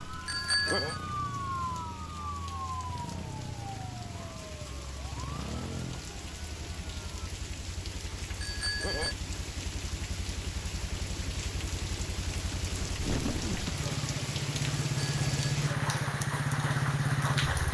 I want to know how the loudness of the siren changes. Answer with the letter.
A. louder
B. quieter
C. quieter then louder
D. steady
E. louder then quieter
B.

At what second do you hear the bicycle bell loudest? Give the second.
1 s.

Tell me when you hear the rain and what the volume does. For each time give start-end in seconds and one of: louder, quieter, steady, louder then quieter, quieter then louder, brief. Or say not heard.
0.0-17.6 louder.